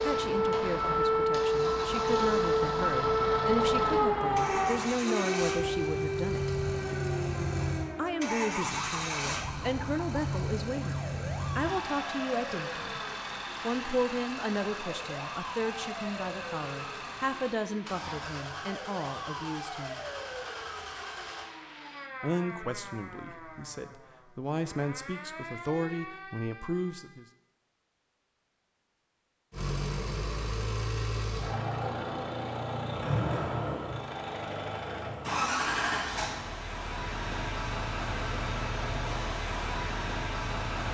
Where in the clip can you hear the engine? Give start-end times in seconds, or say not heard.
0.0-21.5, 29.5-40.8.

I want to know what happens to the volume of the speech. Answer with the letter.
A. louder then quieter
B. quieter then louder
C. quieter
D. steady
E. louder
D.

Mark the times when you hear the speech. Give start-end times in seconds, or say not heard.
0.0-6.5, 8.0-13.0, 13.6-20.0, 22.2-27.2.